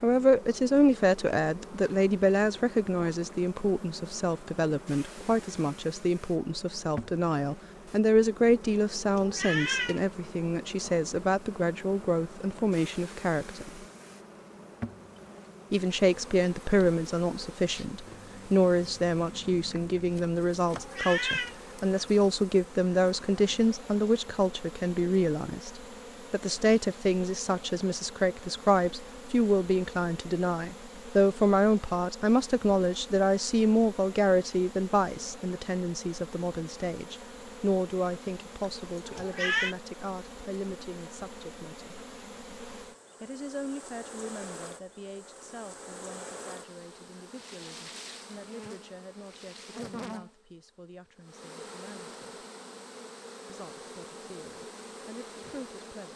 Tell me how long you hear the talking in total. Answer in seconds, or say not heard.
52 s.